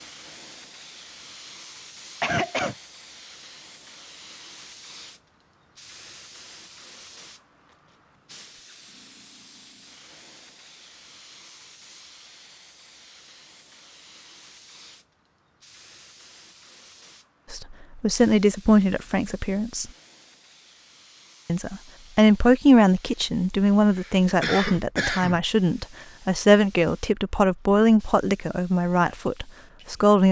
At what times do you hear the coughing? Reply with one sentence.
You can hear the coughing from 2.2 to 2.8 s and from 23.9 to 25.4 s.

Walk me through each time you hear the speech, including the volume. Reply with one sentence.
You can hear the speech briefly from 17.5 to 19.9 s; and from 21.4 to 30.2 s, getting quieter.